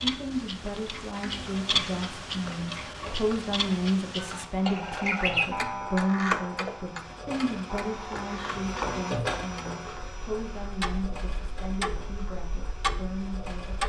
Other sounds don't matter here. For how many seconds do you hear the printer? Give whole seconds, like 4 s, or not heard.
14 s.